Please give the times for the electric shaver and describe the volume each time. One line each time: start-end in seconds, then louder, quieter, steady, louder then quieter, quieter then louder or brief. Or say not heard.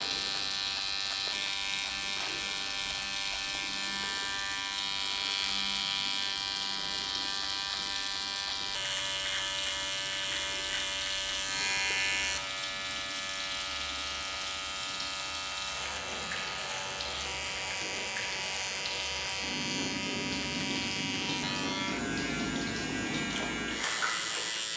0.0-24.7 steady.